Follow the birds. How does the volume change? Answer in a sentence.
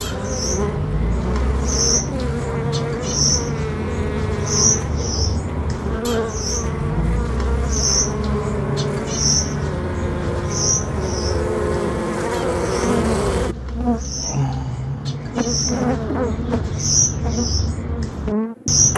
The loudness of the birds goes down, then up.